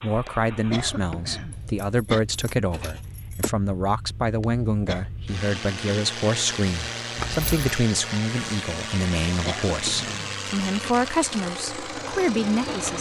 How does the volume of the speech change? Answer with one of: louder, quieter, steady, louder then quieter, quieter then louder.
steady.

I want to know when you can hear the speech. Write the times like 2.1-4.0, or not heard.
0.0-12.9.